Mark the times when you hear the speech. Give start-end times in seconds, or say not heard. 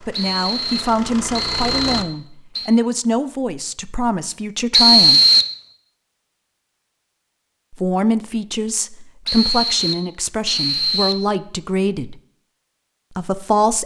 0.1-5.2, 7.7-12.2, 13.2-13.8.